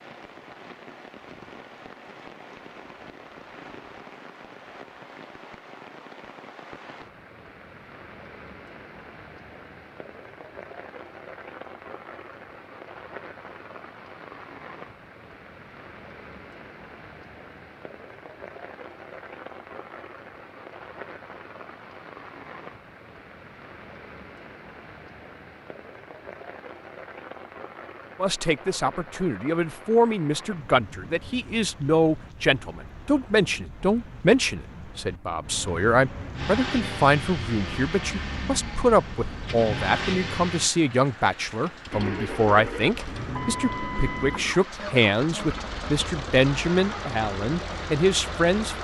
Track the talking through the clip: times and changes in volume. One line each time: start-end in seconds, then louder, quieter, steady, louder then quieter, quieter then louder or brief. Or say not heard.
28.2-48.8 steady.